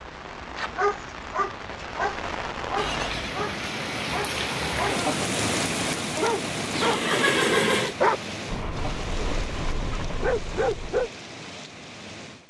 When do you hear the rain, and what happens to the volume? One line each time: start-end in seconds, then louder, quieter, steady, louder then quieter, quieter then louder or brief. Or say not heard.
0.0-12.4 louder then quieter.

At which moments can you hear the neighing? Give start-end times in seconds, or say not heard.
2.8-3.4, 6.7-8.0.